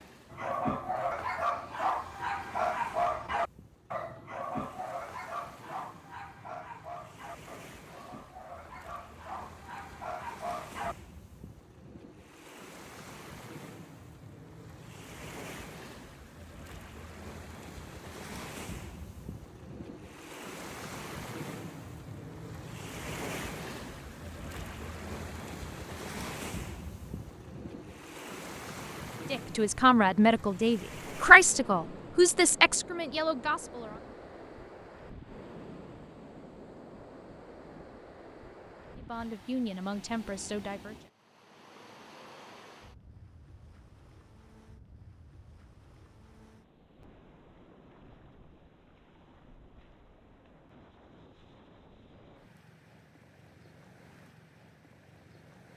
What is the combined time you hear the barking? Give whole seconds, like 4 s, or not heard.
11 s.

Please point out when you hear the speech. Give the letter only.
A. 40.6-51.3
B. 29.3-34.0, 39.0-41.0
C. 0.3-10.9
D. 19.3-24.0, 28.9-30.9
B.